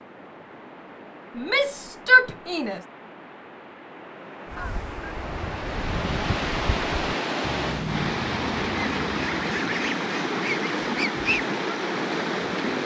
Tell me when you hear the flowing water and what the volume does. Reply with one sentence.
The flowing water can be heard from 0.0 to 12.8 s, getting louder.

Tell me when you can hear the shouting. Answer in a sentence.
The shouting can be heard from 1.4 to 2.8 s.